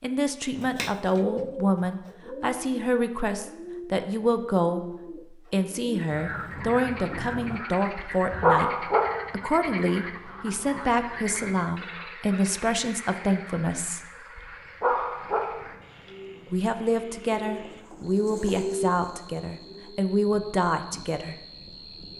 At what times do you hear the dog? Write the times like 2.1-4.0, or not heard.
8.0-9.3, 14.3-15.7.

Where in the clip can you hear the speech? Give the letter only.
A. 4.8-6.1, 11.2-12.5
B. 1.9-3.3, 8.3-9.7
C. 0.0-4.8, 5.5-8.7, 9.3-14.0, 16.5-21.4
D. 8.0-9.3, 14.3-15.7
C.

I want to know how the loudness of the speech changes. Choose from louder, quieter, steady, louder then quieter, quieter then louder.
steady.